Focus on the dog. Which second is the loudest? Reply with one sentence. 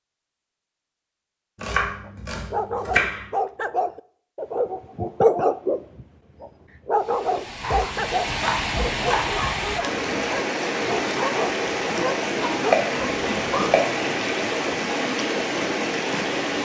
The loudest moment of the dog is at 5 seconds.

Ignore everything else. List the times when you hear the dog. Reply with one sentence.
The dog can be heard from 2.0 to 13.8 s.